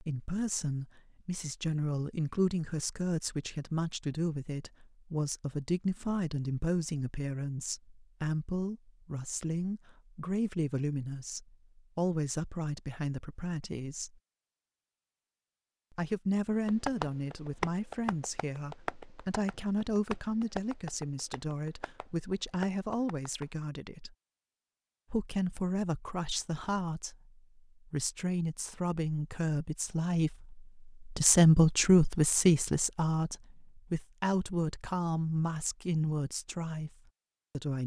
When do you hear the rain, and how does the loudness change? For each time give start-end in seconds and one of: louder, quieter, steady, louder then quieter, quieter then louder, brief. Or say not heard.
not heard.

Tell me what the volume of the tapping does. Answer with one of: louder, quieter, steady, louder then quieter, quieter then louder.
quieter.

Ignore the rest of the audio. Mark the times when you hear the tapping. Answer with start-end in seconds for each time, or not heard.
16.6-23.4.